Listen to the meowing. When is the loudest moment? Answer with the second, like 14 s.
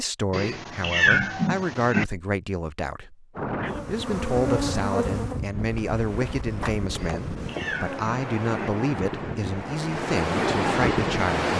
1 s.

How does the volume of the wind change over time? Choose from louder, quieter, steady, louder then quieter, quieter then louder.
louder.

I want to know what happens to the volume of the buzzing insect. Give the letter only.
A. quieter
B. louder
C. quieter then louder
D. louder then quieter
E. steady
C.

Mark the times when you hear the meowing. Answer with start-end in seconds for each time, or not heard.
0.3-2.0, 7.0-8.7.